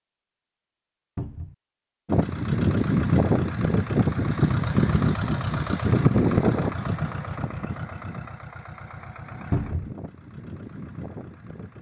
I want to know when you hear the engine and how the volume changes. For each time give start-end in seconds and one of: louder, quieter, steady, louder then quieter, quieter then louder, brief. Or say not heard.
2.0-11.7 quieter.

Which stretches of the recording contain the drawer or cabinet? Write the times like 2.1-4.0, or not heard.
1.1-1.6, 9.5-9.9.